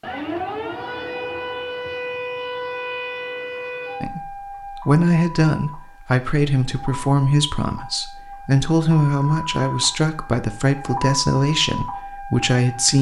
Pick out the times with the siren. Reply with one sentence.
You can hear the siren from 0.0 to 12.9 s.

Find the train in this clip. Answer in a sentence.
The train can't be heard in this clip.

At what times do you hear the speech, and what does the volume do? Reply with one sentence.
The speech can be heard from 4.0 to 12.9 s, at a steady volume.